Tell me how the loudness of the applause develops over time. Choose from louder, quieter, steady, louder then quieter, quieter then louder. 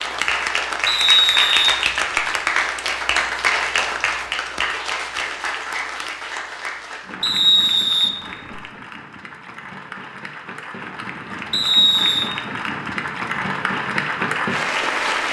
quieter then louder.